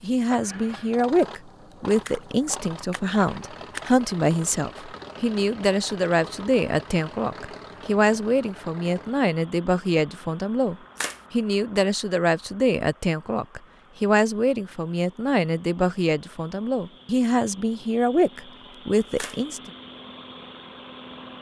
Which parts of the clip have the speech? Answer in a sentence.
You can hear the speech from 0.0 to 19.7 s.